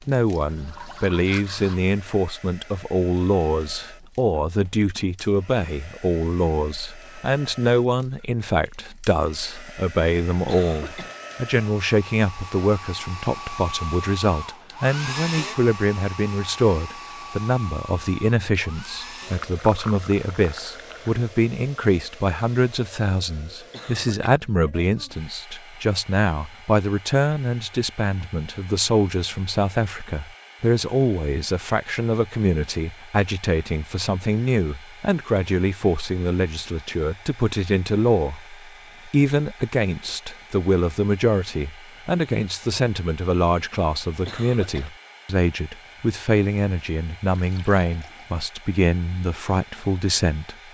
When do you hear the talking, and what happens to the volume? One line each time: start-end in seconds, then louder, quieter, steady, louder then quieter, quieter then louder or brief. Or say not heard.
0.1-50.5 steady.